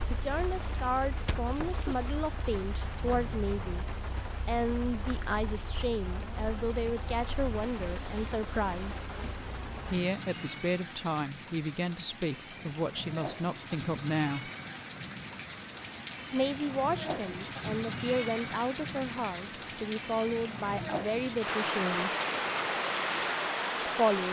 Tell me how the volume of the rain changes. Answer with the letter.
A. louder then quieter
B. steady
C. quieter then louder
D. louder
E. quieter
D.